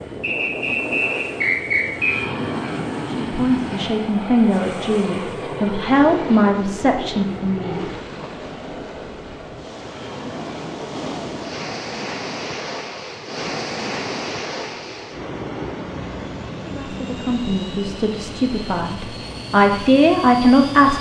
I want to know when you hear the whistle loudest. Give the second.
2 s.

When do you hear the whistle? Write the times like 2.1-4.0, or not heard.
0.2-2.2.